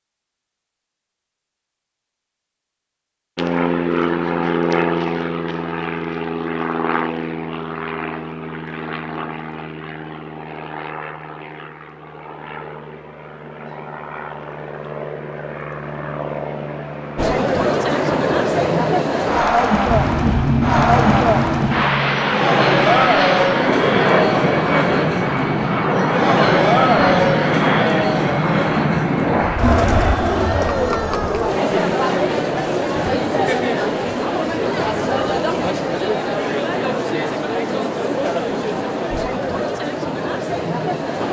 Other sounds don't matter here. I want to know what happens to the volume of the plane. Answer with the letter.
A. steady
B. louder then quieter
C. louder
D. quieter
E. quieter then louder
E.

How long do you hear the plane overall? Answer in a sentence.
The plane can be heard for 27 seconds in total.